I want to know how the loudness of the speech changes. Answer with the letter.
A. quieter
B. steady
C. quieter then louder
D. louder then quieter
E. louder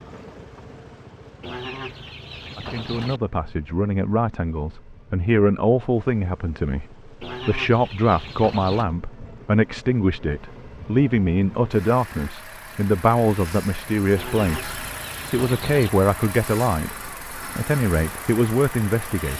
B.